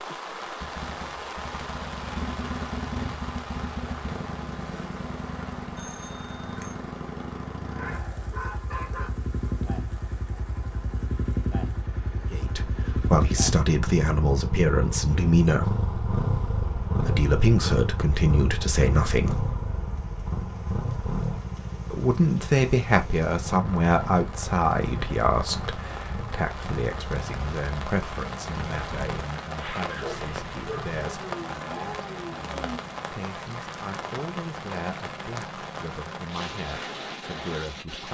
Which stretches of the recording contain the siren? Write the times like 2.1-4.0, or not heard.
not heard.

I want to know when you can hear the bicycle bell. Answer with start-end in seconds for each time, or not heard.
5.8-6.8.